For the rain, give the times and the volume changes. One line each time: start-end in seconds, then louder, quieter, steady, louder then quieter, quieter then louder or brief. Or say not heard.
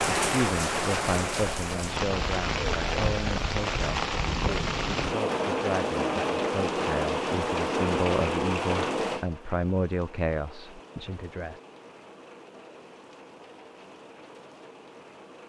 0.0-15.4 quieter.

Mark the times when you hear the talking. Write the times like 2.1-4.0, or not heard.
0.1-11.6.